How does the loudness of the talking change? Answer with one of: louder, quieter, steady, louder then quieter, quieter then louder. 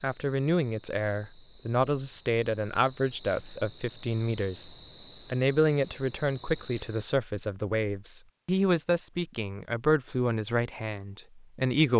steady.